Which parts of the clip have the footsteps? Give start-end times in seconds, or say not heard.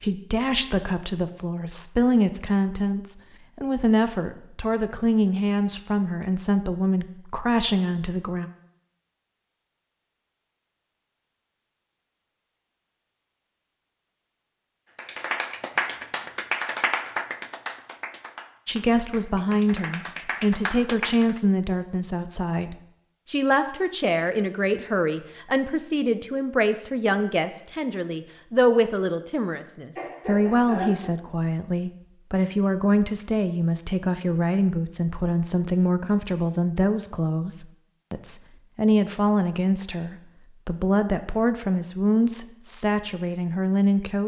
not heard.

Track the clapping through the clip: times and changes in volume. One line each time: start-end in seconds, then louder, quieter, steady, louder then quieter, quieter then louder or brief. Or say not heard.
14.9-21.4 quieter then louder.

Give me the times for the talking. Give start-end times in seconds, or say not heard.
0.0-8.5, 18.6-44.2.